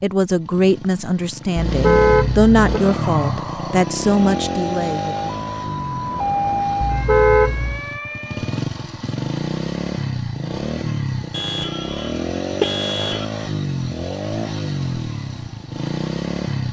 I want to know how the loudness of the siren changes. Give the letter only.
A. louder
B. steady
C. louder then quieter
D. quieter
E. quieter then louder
C.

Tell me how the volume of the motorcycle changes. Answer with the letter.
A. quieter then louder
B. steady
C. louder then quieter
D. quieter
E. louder
B.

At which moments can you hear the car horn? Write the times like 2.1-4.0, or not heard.
1.6-2.8, 6.8-7.8, 11.3-13.2.